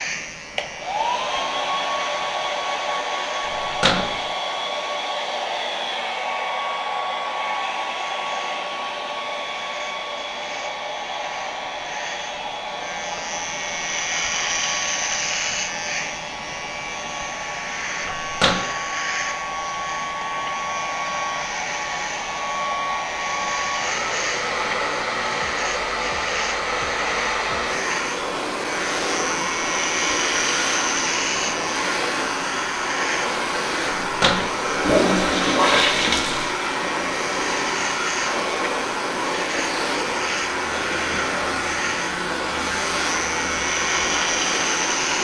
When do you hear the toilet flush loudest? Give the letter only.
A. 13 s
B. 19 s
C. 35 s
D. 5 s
C.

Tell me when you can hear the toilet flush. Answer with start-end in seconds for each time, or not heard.
3.5-4.2, 18.1-18.6, 34.0-36.5.